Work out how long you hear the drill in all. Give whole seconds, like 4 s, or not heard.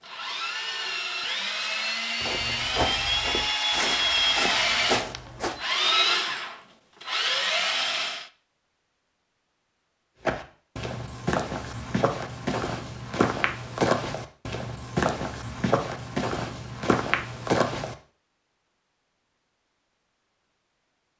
8 s.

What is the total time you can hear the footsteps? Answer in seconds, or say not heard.
11 s.